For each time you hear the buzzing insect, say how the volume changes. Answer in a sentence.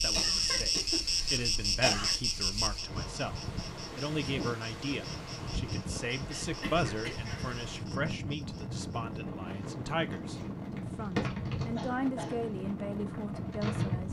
You can hear the buzzing insect from 0.0 to 14.0 s, getting quieter then louder.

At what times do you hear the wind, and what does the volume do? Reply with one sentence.
The wind can be heard from 0.0 to 14.0 s, getting louder.